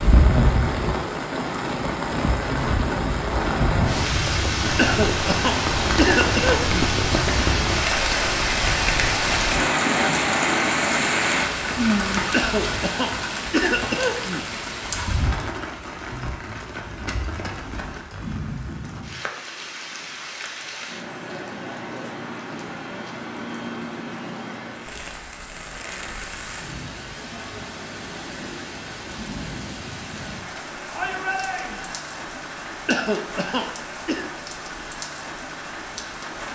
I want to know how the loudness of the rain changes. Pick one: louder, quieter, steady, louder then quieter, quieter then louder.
quieter.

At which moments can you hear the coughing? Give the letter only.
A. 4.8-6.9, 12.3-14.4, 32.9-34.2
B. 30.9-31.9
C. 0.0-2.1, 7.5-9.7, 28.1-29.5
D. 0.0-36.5
A.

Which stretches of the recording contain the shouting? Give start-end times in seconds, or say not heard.
30.9-31.9.